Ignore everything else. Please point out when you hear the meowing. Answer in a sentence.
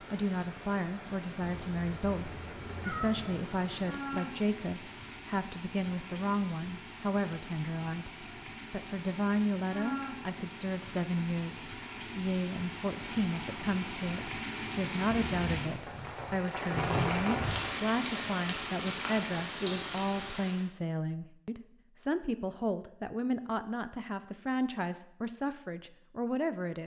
The meowing can be heard from 1.4 to 3.5 s and from 15.1 to 15.5 s.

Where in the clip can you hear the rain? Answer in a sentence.
The rain can be heard from 0.0 to 20.6 s.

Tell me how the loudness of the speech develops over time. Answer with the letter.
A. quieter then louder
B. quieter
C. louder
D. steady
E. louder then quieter
D.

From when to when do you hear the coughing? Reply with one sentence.
The coughing can't be heard in this clip.